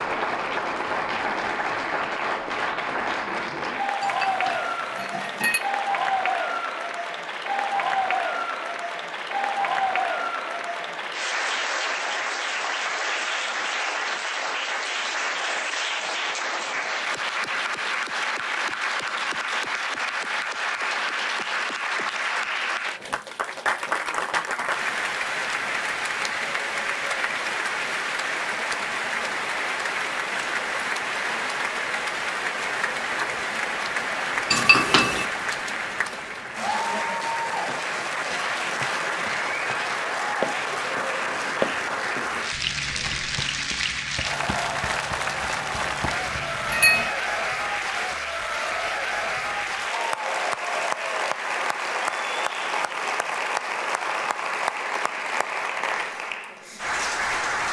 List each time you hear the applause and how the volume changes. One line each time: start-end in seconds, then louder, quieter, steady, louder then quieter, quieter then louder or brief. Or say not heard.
0.0-57.6 steady.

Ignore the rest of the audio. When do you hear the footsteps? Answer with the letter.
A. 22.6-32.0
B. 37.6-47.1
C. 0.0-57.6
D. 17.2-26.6
B.